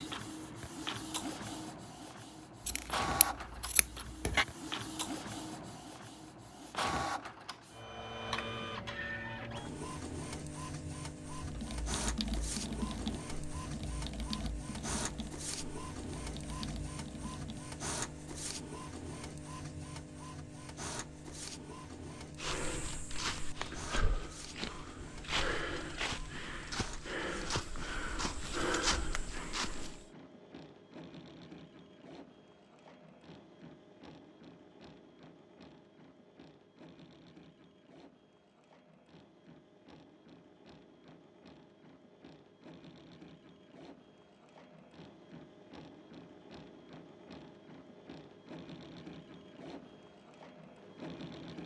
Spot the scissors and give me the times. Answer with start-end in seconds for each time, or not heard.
2.6-4.5.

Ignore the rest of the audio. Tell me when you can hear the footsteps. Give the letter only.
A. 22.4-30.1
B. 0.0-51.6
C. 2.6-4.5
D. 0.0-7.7
A.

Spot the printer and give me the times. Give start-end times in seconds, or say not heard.
0.0-51.6.